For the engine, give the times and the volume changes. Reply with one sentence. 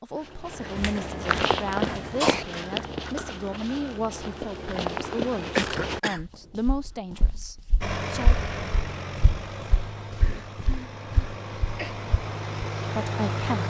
The engine can be heard from 7.8 to 13.6 s, getting quieter then louder.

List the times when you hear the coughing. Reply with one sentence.
You can hear the coughing from 0.8 to 2.5 s, from 5.5 to 6.2 s and from 10.2 to 11.9 s.